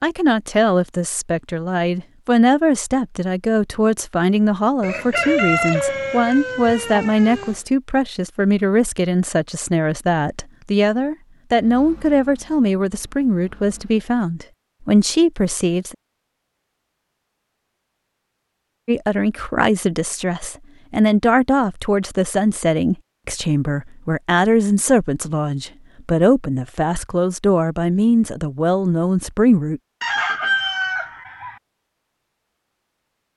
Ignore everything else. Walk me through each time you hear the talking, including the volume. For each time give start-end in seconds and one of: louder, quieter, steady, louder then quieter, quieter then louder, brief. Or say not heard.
0.0-15.9 steady
18.9-29.8 steady.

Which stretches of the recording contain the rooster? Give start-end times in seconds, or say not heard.
4.8-7.6, 30.0-31.6.